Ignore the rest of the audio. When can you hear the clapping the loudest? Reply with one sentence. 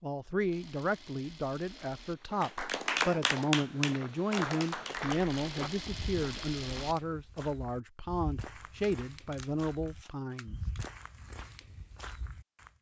The loudest moment of the clapping is at 3 seconds.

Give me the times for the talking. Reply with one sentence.
The talking can be heard from 0.0 to 10.6 s.